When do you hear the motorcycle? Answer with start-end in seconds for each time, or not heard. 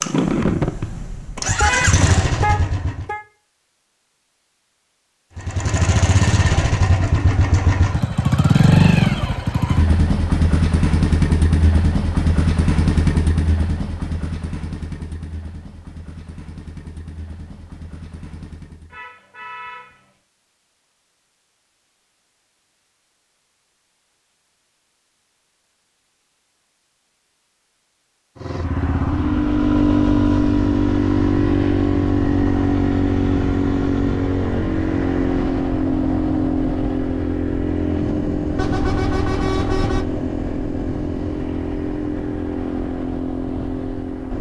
0.0-3.0, 5.3-19.0, 28.4-44.3.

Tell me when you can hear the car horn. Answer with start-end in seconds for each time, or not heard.
1.6-3.2, 18.9-20.1, 38.5-40.0.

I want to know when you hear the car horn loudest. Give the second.
2 s.